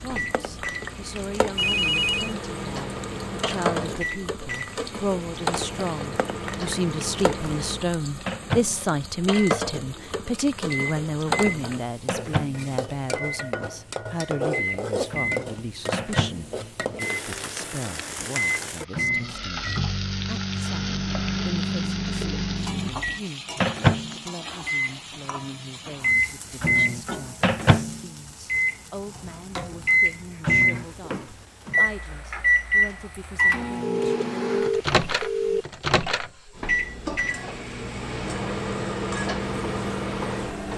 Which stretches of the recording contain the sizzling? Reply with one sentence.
You can hear the sizzling from 0.0 to 40.7 s.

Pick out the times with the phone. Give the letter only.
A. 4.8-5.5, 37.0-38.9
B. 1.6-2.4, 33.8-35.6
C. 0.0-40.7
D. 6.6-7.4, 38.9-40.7
B.